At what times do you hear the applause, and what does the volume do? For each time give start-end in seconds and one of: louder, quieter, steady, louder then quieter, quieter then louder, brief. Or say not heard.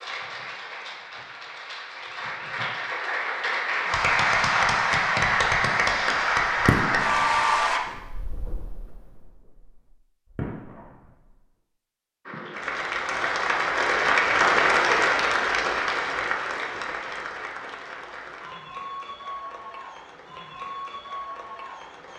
0.0-7.8 louder
12.2-22.1 quieter.